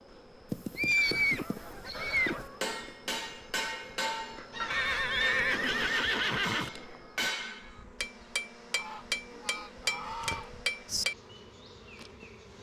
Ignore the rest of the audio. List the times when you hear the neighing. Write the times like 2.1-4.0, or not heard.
0.5-2.5, 4.7-6.7, 10.2-11.1.